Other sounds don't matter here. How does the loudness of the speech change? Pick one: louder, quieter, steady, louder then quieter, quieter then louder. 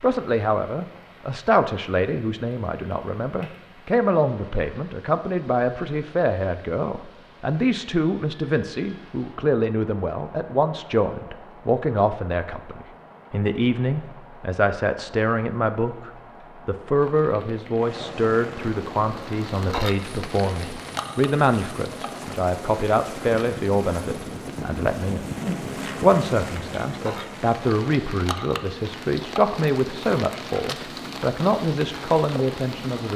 steady.